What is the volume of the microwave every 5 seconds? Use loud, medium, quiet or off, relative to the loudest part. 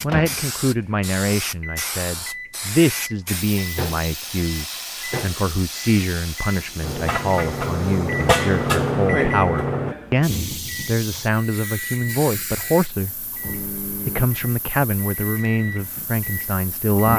medium, loud, medium, medium.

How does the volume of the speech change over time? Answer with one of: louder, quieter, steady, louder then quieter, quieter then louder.
steady.